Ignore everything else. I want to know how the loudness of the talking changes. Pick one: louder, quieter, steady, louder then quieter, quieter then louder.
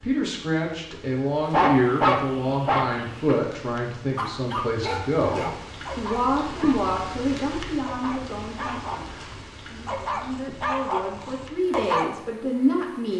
quieter then louder.